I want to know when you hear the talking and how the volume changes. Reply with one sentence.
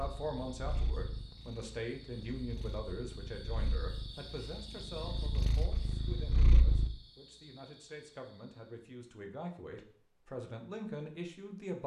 You can hear the talking from 0.0 to 11.8 s, getting quieter then louder.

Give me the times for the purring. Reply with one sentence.
The purring can be heard from 0.0 to 6.9 s.